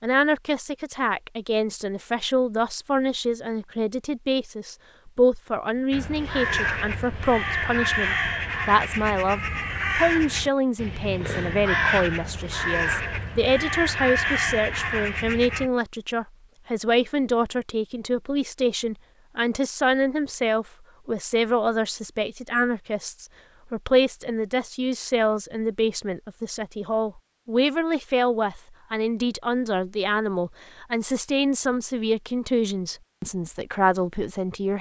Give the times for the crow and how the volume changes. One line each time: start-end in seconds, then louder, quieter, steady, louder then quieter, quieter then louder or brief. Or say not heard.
5.9-15.7 steady.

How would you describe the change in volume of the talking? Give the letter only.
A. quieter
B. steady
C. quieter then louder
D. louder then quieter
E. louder
B.